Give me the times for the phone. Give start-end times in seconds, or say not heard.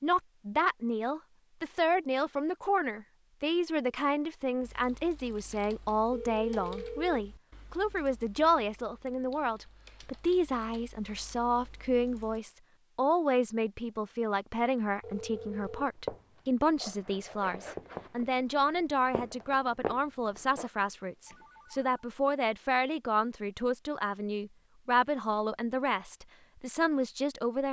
6.1-7.2, 15.0-15.8, 20.8-22.1.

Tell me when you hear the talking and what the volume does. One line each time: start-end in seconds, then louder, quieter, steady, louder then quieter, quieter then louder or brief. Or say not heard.
0.0-27.6 steady.